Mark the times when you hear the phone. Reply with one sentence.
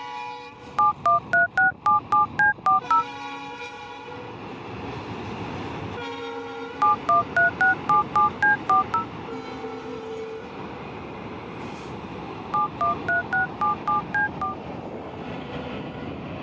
The phone can be heard from 0.8 to 3.0 s, from 6.8 to 9.1 s and from 12.5 to 14.6 s.